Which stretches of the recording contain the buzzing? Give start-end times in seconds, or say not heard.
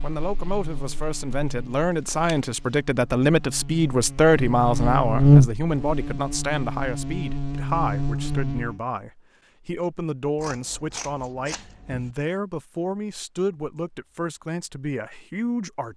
0.0-8.8.